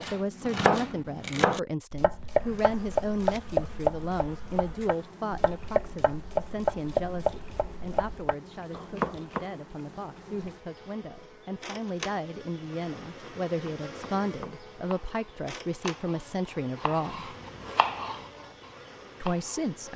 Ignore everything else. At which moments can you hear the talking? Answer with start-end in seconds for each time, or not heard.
0.1-17.3, 19.2-19.9.